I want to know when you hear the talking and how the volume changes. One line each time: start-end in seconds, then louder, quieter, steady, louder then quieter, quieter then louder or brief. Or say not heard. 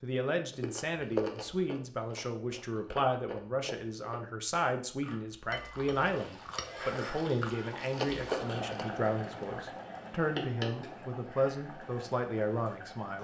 0.0-13.1 steady.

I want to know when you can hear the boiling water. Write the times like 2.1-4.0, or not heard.
5.5-13.1.